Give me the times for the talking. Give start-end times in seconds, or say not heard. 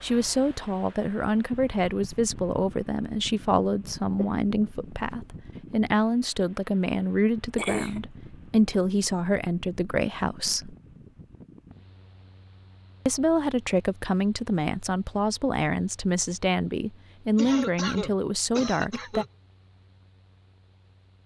0.0-10.8, 13.1-19.2.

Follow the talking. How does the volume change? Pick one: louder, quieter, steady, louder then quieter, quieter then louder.
steady.